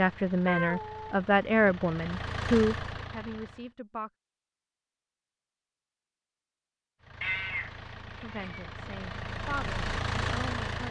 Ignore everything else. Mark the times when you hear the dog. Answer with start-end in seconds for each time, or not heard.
not heard.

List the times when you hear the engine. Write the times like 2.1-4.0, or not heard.
0.0-3.8, 7.0-10.8.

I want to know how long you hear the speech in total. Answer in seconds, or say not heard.
7 s.